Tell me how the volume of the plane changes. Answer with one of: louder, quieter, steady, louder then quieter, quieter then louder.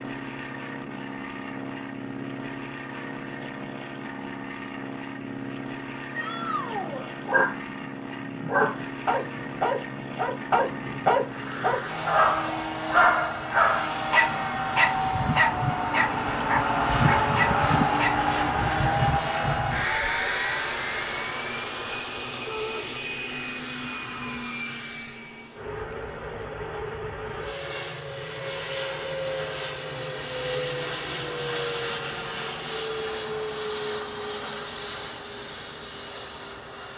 louder then quieter.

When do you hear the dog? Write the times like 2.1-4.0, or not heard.
6.3-18.1.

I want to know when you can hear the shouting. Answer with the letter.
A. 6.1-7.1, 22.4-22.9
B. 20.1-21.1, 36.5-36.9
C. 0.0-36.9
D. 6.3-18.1
A.